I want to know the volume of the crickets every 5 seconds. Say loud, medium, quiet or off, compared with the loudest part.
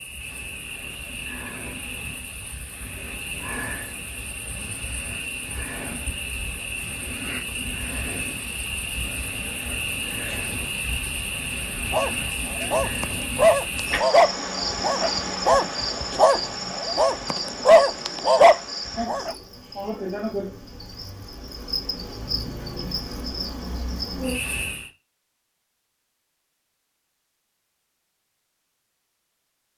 medium, loud, loud, loud, loud, off.